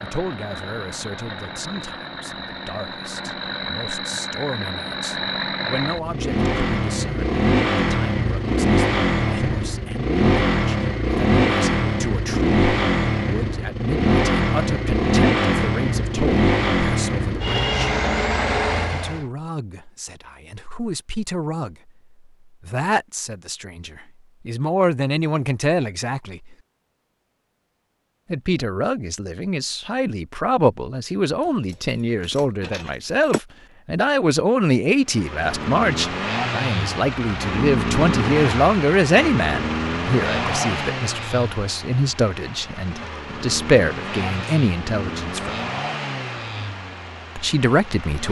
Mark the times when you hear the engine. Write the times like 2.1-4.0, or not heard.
0.0-19.2, 35.0-48.2.